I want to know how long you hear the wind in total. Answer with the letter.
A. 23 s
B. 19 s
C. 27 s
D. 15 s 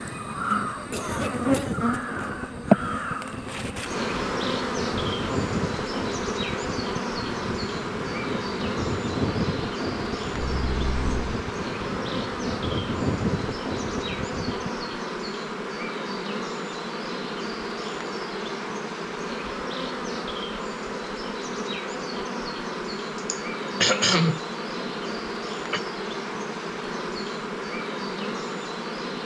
D.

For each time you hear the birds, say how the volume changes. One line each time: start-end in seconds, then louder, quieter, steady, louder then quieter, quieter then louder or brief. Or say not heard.
not heard.